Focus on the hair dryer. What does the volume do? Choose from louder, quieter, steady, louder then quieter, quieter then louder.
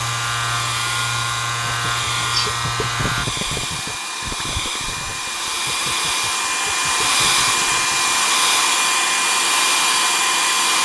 louder.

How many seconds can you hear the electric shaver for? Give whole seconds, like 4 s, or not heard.
3 s.